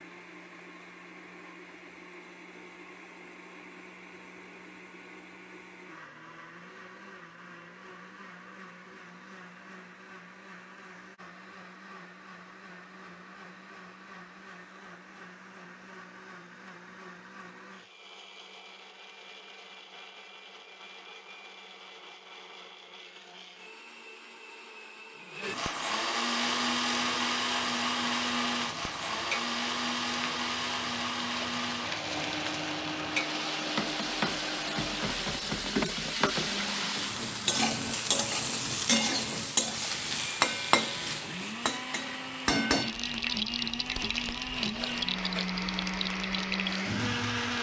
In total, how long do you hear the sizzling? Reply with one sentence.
The sizzling can be heard for 21 seconds in total.